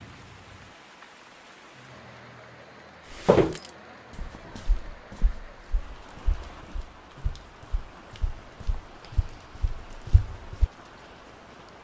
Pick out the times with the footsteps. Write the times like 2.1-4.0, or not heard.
3.1-10.7.